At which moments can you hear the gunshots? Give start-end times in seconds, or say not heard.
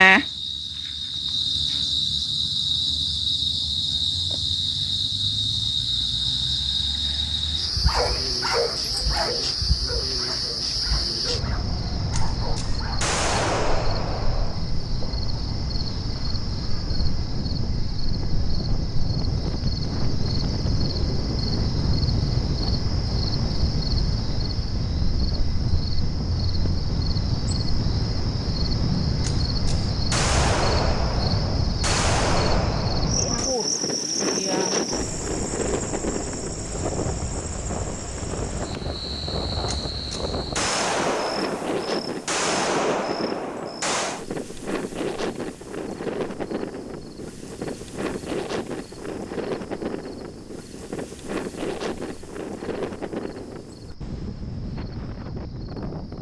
12.1-14.7, 29.2-33.5, 39.6-44.2.